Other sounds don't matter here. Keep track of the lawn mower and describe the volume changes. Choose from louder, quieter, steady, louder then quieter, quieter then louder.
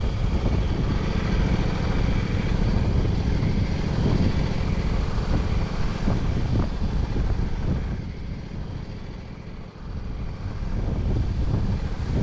quieter.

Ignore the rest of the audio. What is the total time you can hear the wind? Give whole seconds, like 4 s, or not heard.
12 s.